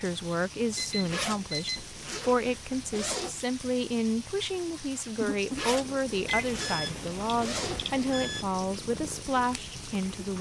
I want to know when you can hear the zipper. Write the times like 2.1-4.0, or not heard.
0.8-3.5, 5.2-7.9.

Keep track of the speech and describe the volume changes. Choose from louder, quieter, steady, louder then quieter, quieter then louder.
steady.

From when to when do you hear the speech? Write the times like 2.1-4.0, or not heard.
0.0-10.3.